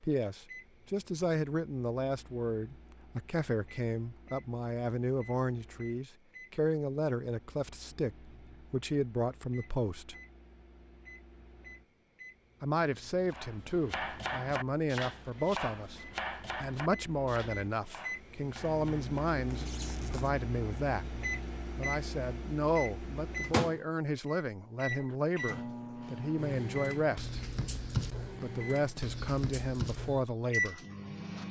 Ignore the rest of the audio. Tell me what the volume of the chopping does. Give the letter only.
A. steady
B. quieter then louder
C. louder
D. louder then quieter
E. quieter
E.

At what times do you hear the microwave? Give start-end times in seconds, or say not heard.
0.1-31.4.